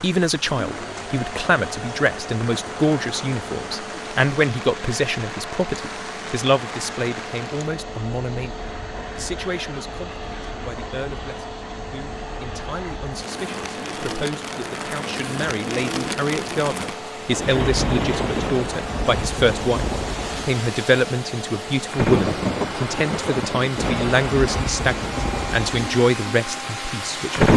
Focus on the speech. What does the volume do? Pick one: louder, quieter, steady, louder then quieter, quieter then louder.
quieter then louder.